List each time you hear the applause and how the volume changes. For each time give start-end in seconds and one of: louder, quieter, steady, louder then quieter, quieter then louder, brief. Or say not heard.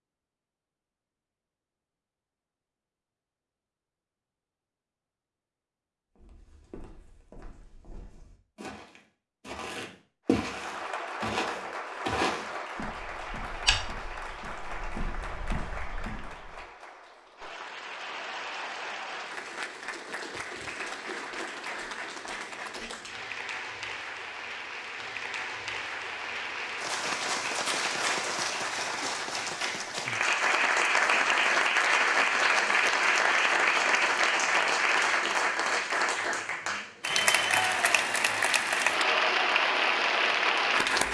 10.2-41.0 louder.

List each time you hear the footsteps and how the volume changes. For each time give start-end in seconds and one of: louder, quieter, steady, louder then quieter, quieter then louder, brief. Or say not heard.
6.2-16.6 louder then quieter.